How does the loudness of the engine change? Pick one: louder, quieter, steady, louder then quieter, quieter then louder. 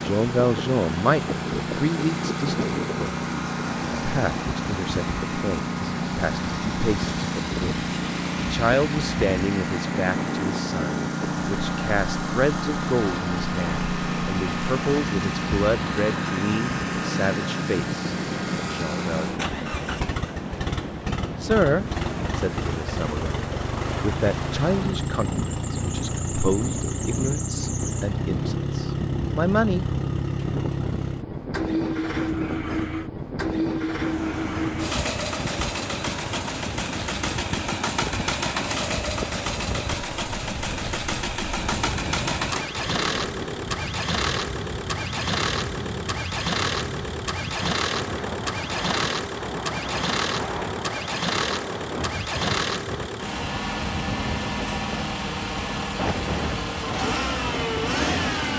steady.